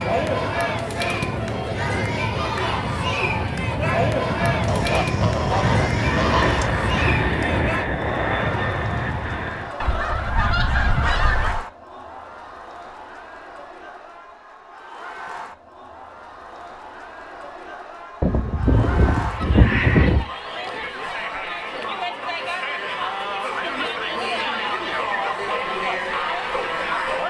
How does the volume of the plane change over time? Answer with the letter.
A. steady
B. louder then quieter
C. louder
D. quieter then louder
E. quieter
C.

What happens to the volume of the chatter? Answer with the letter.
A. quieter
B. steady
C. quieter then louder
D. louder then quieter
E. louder
C.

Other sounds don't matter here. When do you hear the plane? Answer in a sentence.
The plane can be heard from 0.0 to 9.8 s.